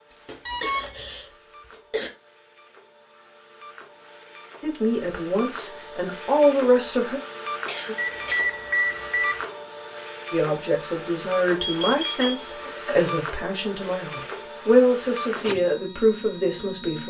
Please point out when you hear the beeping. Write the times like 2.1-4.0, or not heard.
0.5-1.1, 8.0-9.4, 11.6-12.2.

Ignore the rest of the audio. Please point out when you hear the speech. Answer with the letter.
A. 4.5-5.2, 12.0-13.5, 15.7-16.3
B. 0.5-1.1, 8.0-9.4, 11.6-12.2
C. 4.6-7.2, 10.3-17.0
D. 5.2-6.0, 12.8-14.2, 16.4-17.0
C.